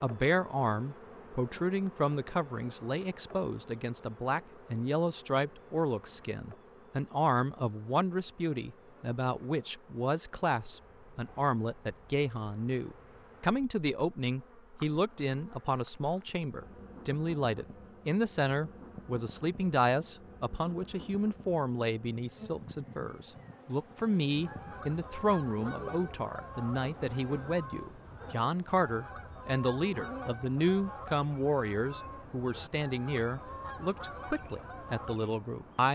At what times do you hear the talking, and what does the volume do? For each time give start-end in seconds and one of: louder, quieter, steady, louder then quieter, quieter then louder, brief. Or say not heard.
0.0-35.8 steady.